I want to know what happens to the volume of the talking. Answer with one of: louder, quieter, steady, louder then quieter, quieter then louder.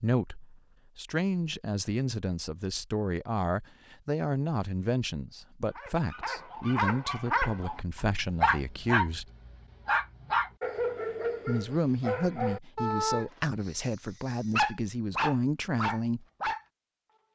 steady.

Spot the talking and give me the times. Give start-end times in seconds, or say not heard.
0.0-9.2, 11.4-16.2.